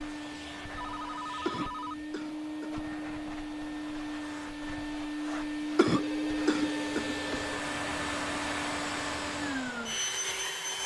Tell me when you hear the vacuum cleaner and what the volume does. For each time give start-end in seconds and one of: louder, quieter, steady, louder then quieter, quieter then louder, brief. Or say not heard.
0.0-10.8 louder.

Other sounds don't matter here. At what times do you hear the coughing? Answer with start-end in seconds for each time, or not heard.
1.4-2.8, 5.8-7.2.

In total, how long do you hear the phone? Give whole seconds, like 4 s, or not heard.
3 s.